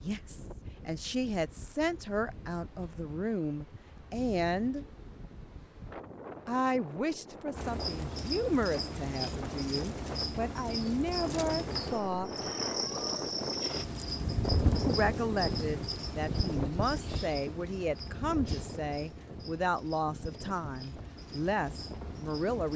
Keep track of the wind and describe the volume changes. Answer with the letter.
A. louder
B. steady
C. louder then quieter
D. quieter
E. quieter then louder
C.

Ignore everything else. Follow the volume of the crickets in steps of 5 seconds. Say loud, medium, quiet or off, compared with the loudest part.
off, loud, loud, medium, medium.